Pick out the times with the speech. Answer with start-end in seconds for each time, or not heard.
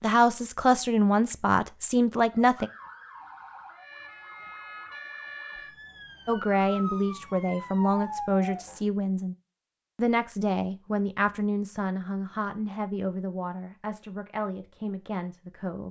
0.0-2.7, 6.2-9.3, 9.9-15.8.